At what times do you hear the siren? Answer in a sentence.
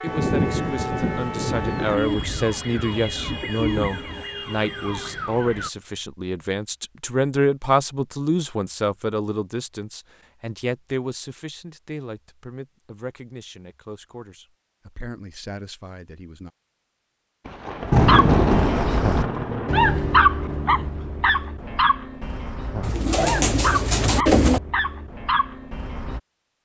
The siren can be heard from 0.0 to 5.7 s.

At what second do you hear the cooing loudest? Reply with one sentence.
The loudest moment of the cooing is at 24 seconds.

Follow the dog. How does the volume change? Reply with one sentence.
The volume of the dog goes up, then down.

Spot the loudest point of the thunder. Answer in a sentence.
The loudest moment of the thunder is at 18 seconds.